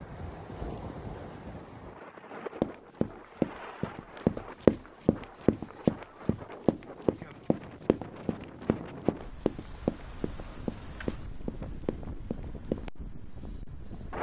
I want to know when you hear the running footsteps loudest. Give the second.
5 s.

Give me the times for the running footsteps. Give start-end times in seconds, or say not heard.
2.6-12.9.